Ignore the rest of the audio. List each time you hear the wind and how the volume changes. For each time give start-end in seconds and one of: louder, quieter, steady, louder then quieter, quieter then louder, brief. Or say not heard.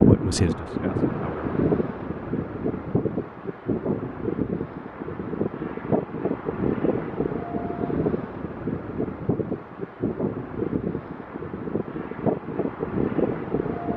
0.0-13.9 steady.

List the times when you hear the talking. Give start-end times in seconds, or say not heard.
0.0-1.5.